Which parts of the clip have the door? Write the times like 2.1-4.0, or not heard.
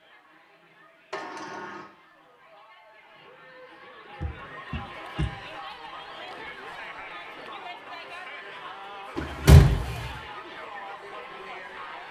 1.1-1.9, 4.2-5.3, 9.2-10.1.